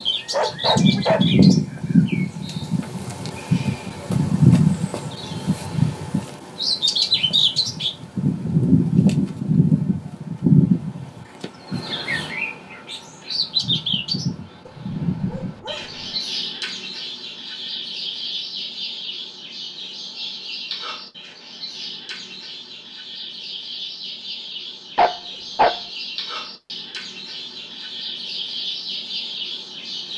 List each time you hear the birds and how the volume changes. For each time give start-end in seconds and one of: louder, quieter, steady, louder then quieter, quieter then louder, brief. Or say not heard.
0.0-30.1 quieter.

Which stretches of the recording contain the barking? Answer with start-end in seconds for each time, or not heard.
0.3-1.2, 14.7-16.2, 24.9-25.8.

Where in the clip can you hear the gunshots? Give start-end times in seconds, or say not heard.
not heard.